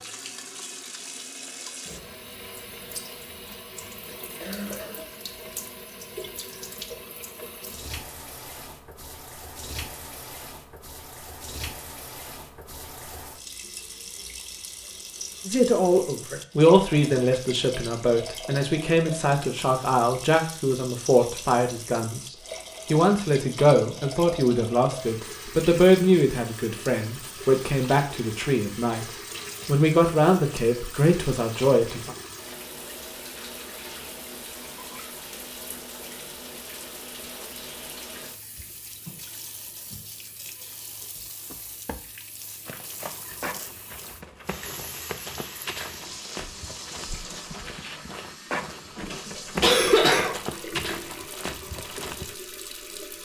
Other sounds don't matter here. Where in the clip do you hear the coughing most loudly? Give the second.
50 s.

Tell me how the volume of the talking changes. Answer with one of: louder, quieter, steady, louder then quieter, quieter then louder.
steady.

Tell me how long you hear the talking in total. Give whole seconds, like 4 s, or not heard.
17 s.